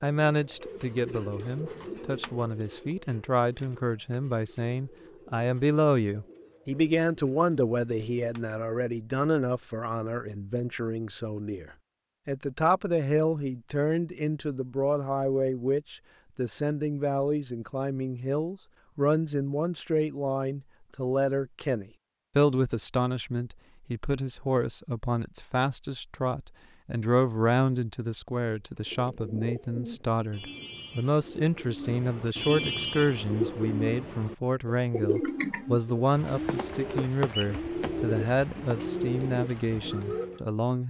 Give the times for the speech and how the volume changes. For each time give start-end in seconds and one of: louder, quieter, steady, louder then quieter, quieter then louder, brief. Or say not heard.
0.0-40.8 steady.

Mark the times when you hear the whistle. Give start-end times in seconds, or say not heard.
not heard.